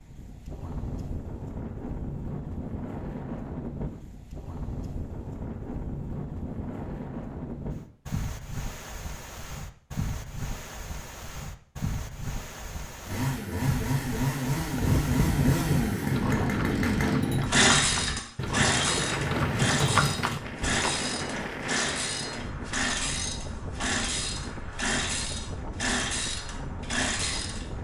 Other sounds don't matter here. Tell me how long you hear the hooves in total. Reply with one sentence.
You can hear the hooves for 6 seconds altogether.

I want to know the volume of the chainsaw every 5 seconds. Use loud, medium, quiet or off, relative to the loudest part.
off, off, loud, loud, medium, medium.